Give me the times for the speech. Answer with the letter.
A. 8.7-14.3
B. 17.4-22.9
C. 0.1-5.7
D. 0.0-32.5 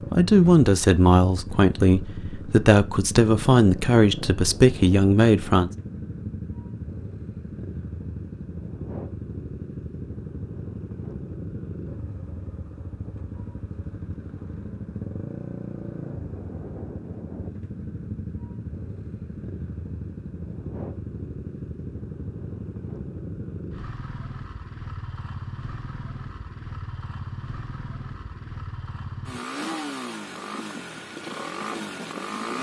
C.